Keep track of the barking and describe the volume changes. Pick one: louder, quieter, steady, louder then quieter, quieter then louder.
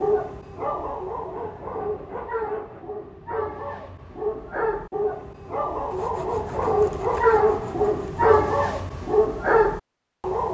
louder.